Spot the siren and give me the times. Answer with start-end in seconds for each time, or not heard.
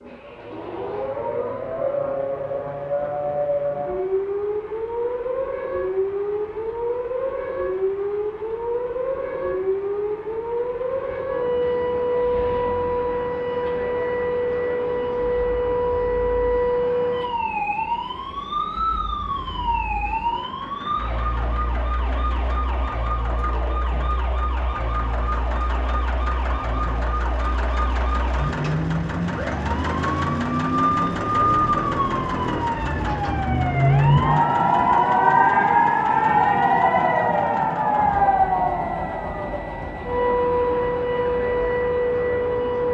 0.0-42.9.